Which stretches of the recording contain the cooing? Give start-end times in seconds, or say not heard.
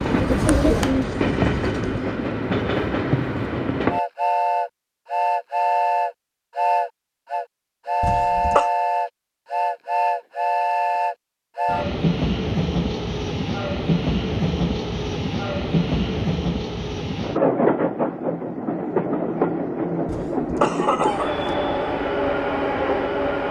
0.0-2.2.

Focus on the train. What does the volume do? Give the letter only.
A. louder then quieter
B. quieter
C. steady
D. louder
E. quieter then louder
C.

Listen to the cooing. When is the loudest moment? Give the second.
1 s.